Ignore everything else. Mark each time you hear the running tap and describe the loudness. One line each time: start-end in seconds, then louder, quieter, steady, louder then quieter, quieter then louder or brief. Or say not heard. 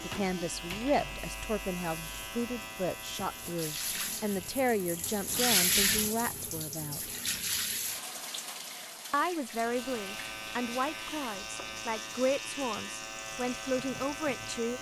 0.0-14.7 louder then quieter.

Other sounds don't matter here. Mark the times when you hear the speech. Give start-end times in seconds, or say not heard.
0.0-7.1, 9.1-14.7.